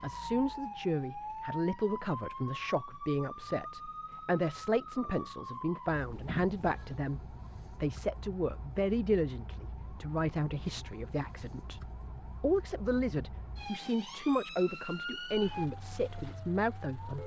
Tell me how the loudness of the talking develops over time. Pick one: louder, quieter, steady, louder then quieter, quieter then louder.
steady.